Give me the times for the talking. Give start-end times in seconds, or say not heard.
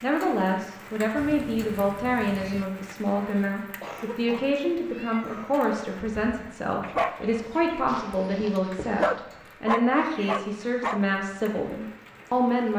0.0-12.7.